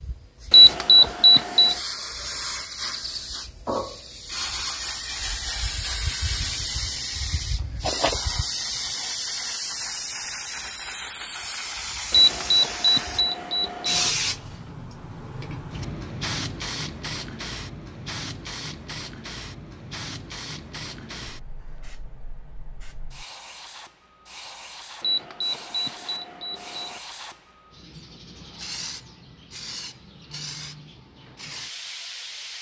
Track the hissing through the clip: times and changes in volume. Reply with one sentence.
You can hear the hissing from 0.0 to 32.5 s, getting quieter.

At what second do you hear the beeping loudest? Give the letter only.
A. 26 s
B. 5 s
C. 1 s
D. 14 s
C.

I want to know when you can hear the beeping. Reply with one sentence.
You can hear the beeping from 0.5 to 1.8 s, from 12.1 to 14.1 s and from 25.0 to 27.0 s.